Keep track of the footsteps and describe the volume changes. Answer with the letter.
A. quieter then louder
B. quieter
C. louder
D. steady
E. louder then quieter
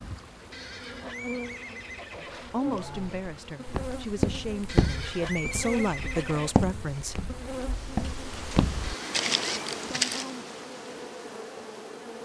A.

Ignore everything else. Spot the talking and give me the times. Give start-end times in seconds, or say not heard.
2.1-7.2.